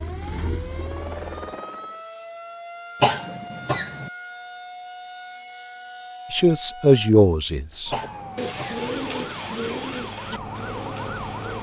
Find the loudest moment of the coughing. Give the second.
3 s.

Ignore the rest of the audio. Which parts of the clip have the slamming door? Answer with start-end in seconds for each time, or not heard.
not heard.